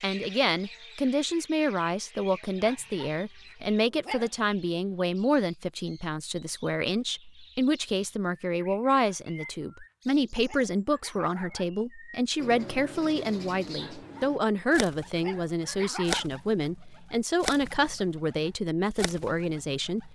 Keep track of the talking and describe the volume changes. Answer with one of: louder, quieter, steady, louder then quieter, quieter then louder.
steady.